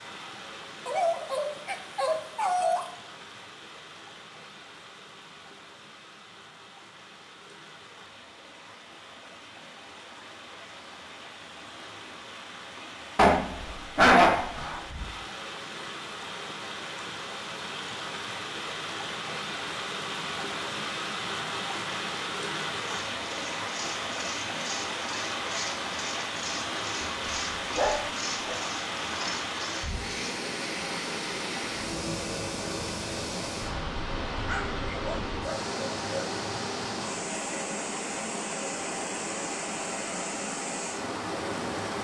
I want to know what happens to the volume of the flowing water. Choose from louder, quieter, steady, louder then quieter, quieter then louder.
louder.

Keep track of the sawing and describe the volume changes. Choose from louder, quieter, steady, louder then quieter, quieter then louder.
steady.